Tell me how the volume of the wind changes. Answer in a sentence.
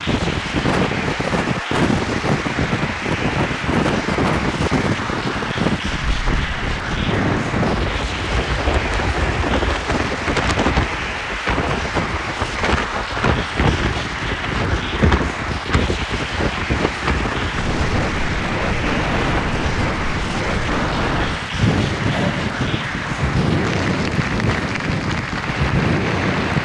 The loudness of the wind stays about the same.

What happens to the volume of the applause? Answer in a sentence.
The loudness of the applause stays about the same.